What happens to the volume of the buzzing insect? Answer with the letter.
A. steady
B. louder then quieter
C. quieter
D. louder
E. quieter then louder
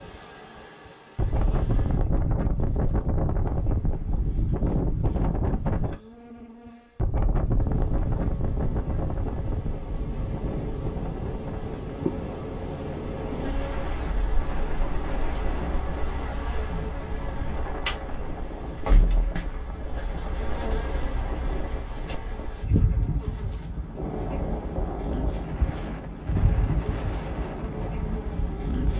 D.